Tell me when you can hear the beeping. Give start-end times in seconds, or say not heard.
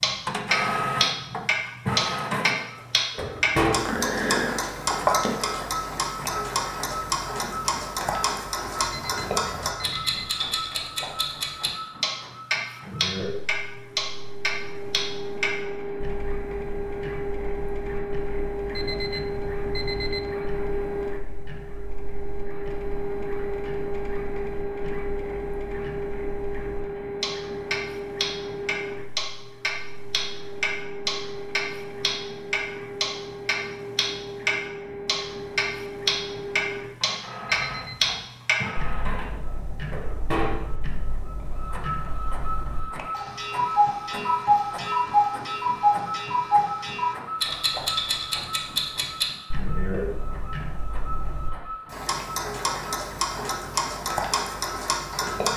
8.8-10.3, 18.7-20.4, 37.5-38.2.